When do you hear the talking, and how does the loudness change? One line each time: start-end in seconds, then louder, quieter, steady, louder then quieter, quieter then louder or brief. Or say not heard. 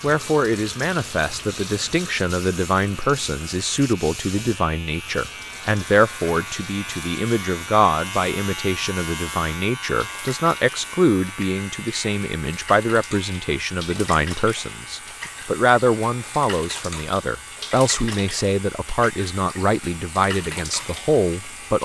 0.0-21.7 steady.